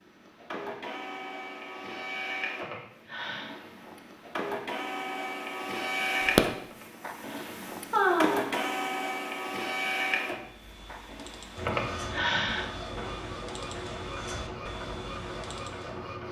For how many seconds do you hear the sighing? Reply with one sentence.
The sighing can be heard for 4 seconds in total.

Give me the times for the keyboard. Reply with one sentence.
The keyboard can be heard from 10.3 to 16.1 s.